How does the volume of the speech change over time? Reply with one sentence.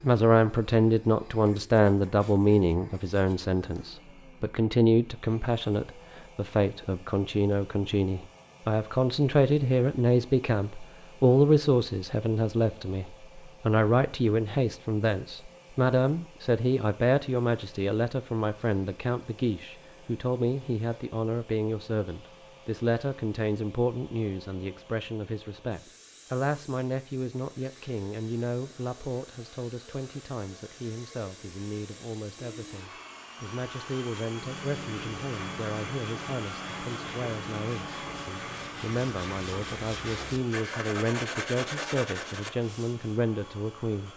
The volume of the speech goes down.